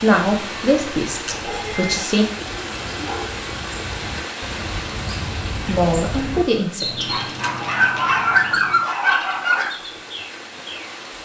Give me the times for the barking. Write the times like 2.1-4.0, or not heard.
1.3-2.1, 2.9-3.3, 7.0-9.8.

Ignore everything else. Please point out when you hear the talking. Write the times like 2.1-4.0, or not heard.
0.0-2.2, 5.7-7.1.